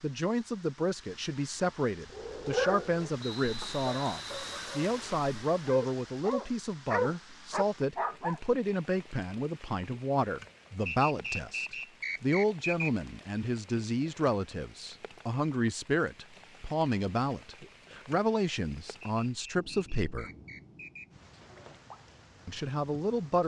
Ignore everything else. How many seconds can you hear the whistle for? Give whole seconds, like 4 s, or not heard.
6 s.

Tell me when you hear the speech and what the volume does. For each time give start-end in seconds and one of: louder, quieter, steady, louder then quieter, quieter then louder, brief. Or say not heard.
0.0-20.3 steady
22.4-23.4 brief.